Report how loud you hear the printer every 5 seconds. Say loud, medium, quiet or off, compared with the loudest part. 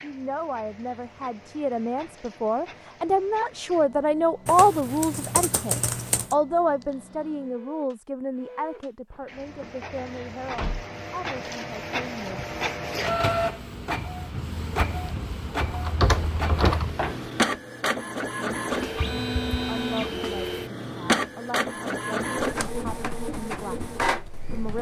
quiet, quiet, loud, loud, loud.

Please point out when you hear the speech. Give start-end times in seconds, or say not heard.
0.0-12.4, 19.7-24.7.